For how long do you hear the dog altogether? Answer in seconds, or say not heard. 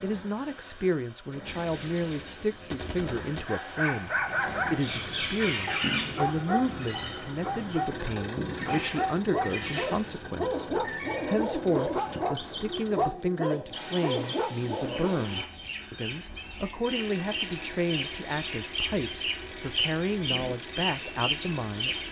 12 s.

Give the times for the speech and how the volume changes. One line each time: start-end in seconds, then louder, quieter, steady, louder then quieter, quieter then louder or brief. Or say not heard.
0.0-22.0 steady.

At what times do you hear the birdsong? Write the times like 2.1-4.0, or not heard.
4.0-22.0.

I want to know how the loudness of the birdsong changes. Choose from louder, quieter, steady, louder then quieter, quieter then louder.
quieter then louder.